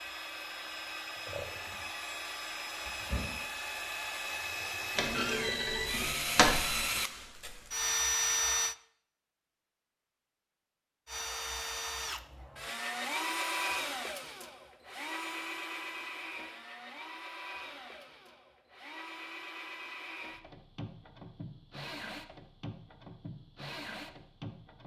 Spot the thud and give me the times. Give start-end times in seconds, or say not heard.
5.0-6.8.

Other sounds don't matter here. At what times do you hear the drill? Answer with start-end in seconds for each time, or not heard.
0.0-8.8, 11.1-24.8.